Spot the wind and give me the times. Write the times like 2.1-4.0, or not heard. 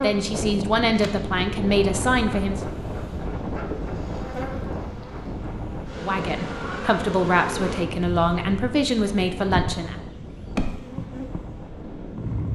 0.0-12.4.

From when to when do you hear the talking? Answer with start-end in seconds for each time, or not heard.
0.0-2.6, 6.0-9.9.